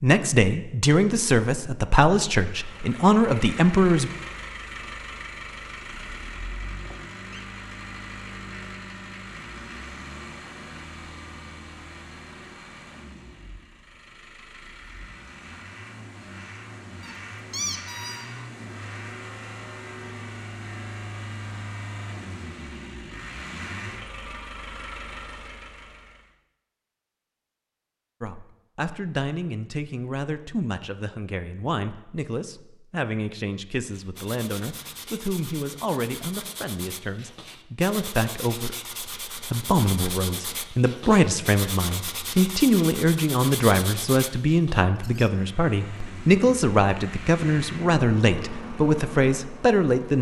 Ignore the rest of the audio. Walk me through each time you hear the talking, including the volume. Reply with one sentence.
You can hear the talking from 0.0 to 4.1 s, getting quieter then louder; and from 28.2 to 50.1 s, getting louder.